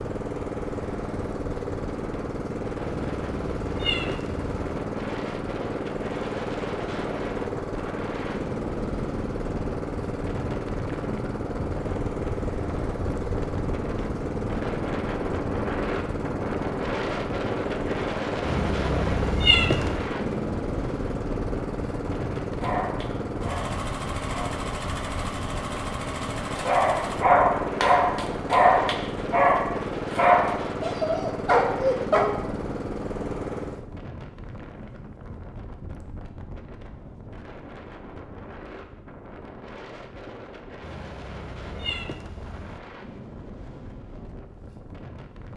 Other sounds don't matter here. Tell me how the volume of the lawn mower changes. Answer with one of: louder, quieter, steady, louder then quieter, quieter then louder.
steady.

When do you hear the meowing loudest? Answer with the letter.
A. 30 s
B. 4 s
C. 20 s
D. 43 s
C.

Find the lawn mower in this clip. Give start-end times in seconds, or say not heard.
0.0-33.9.